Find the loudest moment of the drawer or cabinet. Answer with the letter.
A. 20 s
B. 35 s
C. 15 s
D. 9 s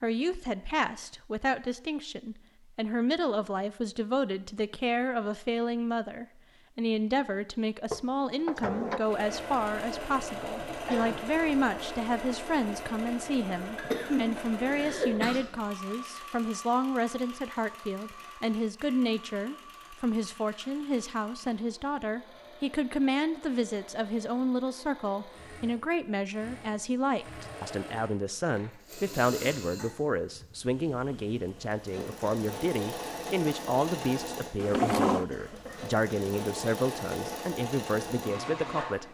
B.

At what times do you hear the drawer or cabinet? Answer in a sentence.
You can hear the drawer or cabinet from 7.9 to 9.0 s, from 14.3 to 15.3 s and from 34.5 to 35.2 s.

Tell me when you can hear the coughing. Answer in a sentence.
You can hear the coughing from 10.6 to 11.3 s, from 13.8 to 15.4 s and from 35.1 to 36.0 s.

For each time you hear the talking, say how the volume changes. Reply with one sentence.
The talking can be heard from 0.0 to 39.0 s, at a steady volume.